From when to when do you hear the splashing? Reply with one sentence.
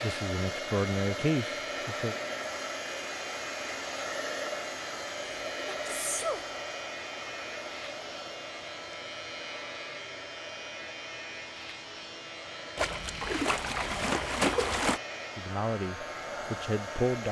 You can hear the splashing from 12.8 to 15.0 s.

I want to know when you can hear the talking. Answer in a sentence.
The talking can be heard from 0.0 to 2.1 s and from 15.3 to 17.2 s.